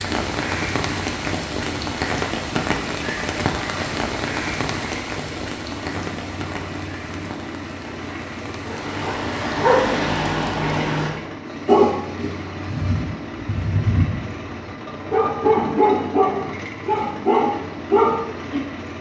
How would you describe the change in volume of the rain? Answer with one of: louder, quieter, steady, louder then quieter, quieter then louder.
quieter.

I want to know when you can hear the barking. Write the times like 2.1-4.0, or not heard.
8.7-18.6.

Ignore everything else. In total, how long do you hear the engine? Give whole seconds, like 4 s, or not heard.
19 s.